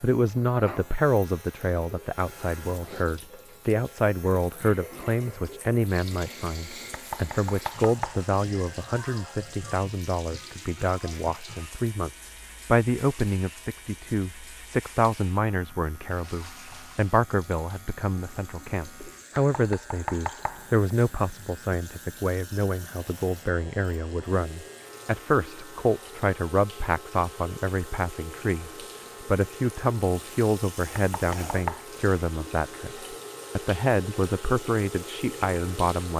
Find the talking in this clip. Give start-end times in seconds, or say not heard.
0.0-36.1.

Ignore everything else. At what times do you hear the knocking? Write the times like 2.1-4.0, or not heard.
6.9-8.2, 19.4-20.6, 30.9-31.8.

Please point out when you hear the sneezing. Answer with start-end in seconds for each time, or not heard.
not heard.